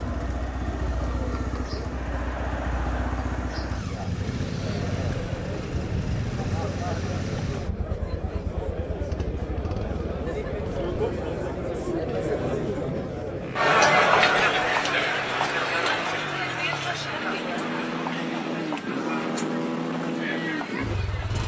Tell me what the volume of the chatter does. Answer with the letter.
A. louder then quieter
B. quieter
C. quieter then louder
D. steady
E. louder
A.